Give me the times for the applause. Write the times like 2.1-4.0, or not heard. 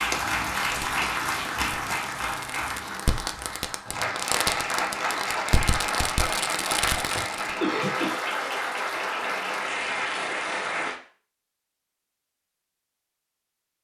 0.0-10.9.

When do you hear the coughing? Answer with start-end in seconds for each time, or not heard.
7.2-8.2.